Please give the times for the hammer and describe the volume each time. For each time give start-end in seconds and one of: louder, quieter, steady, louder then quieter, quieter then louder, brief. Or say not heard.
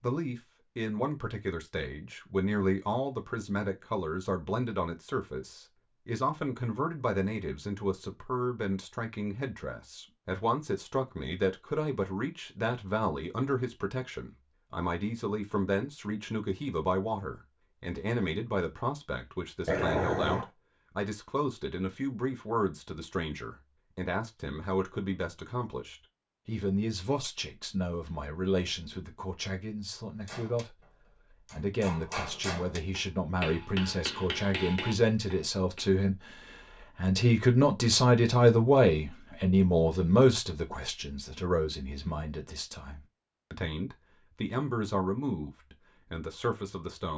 30.2-35.9 louder.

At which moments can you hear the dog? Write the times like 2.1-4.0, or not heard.
19.6-20.5.